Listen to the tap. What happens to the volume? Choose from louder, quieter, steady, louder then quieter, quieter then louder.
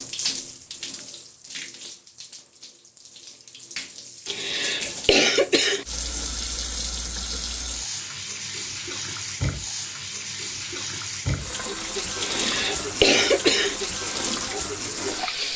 louder.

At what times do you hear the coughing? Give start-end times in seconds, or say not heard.
4.2-5.8, 12.2-13.8.